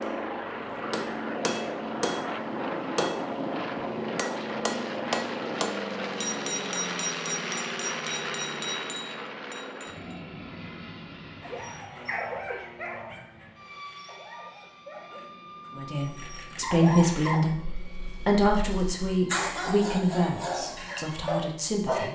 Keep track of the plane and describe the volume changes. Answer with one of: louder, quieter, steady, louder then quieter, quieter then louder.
quieter.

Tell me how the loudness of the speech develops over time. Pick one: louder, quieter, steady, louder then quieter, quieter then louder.
quieter.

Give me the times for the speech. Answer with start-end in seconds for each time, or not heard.
15.8-22.0.